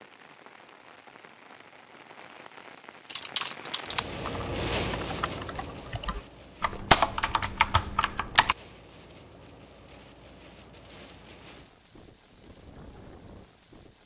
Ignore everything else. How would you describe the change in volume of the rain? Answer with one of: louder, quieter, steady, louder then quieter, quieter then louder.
louder then quieter.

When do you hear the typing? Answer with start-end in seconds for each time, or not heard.
3.1-8.6.